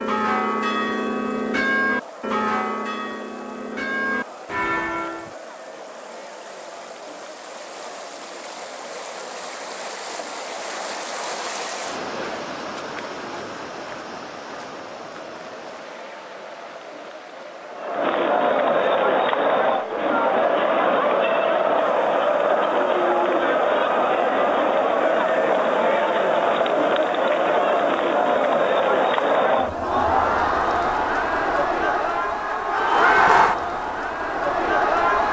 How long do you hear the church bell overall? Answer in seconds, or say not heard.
5 s.